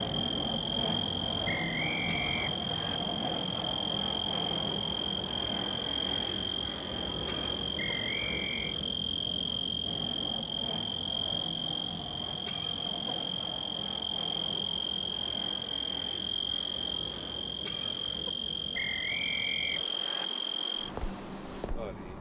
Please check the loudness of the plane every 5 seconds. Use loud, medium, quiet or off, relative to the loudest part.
loud, loud, medium, medium, medium.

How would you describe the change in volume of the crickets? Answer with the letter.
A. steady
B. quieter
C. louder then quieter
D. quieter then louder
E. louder
A.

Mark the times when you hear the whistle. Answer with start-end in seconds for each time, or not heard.
1.4-3.0, 7.8-8.8, 18.7-20.2.